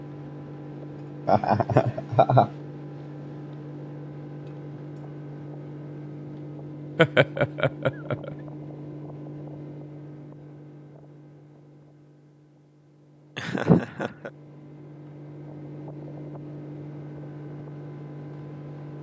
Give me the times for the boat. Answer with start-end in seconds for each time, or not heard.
0.0-18.9.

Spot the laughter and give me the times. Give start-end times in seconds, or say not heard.
1.2-2.5, 7.0-8.3, 13.3-14.3.